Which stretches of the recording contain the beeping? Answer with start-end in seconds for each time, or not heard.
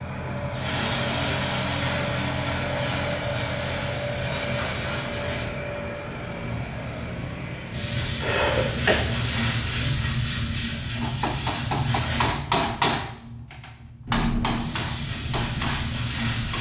not heard.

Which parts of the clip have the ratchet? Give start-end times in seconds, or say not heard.
not heard.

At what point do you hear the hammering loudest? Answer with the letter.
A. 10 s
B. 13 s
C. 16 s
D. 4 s
B.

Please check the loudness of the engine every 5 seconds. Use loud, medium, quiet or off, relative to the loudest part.
loud, medium, loud, medium.